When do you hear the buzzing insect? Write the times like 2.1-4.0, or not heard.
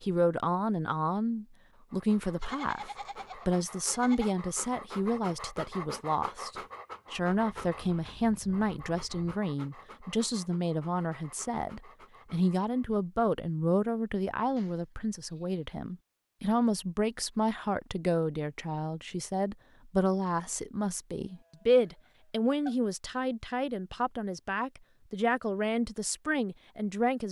not heard.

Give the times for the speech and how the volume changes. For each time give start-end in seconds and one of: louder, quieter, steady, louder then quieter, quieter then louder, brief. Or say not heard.
0.0-27.2 steady.